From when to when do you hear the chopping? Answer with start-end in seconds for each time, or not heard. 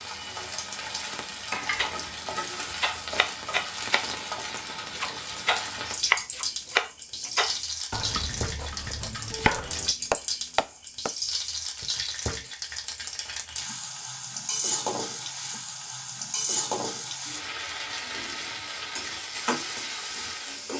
1.8-11.1.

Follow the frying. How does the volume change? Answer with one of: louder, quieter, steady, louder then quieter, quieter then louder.
steady.